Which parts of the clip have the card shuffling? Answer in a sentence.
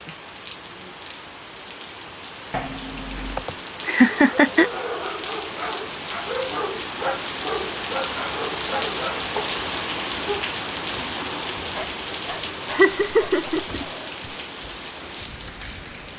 The card shuffling can be heard from 2.5 to 3.5 s.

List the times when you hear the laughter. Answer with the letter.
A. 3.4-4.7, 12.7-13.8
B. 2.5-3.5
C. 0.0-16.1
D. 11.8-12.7
A.